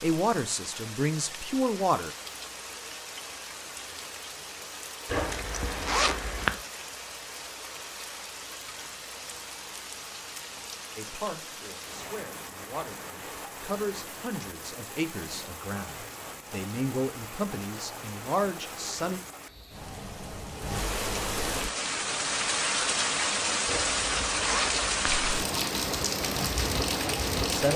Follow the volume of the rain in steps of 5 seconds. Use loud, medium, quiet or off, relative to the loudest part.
quiet, quiet, quiet, quiet, loud, loud.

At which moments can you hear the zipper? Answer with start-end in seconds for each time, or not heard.
5.0-6.6, 23.6-25.2.